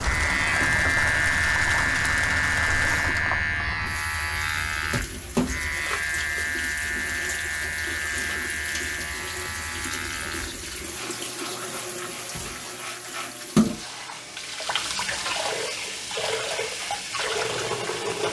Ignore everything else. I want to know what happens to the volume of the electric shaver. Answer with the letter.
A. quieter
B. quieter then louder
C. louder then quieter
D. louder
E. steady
A.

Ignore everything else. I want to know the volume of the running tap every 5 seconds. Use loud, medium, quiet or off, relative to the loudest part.
loud, medium, loud, loud.